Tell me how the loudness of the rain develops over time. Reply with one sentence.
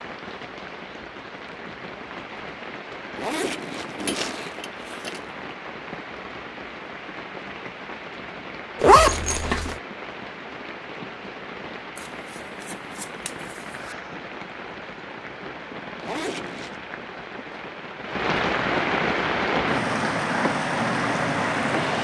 The volume of the rain goes up.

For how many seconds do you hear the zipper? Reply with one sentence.
The zipper can be heard for 4 seconds in total.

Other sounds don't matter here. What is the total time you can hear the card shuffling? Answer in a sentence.
The card shuffling can be heard for 2 seconds in total.